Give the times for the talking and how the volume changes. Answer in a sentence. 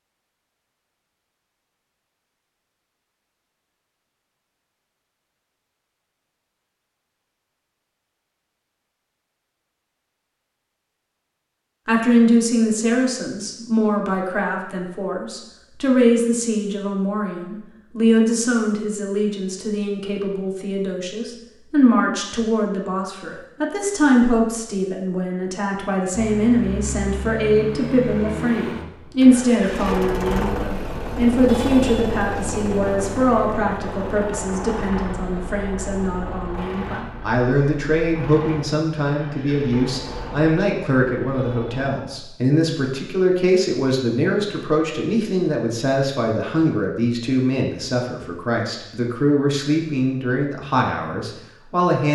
The talking can be heard from 11.8 to 52.1 s, at a steady volume.